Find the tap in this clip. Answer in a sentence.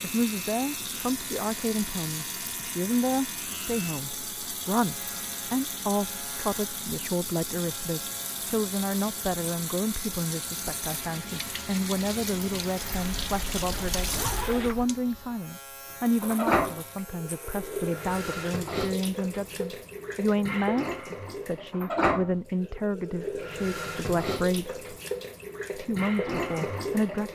The tap can be heard from 0.0 to 27.2 s.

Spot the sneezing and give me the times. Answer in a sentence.
The sneezing can't be heard in this clip.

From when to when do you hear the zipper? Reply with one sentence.
The zipper can be heard from 12.8 to 14.8 s.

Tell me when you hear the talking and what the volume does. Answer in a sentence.
The talking can be heard from 0.0 to 24.9 s, at a steady volume; and briefly from 25.7 to 27.2 s.